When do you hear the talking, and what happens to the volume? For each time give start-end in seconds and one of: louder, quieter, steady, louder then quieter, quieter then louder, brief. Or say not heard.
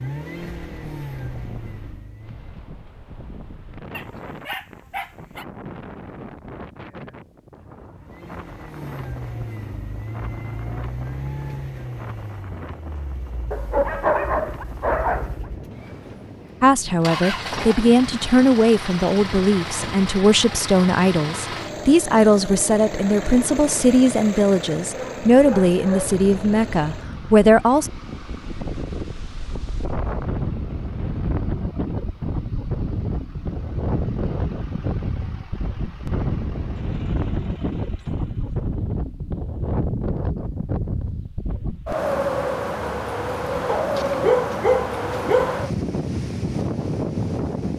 16.6-27.9 steady.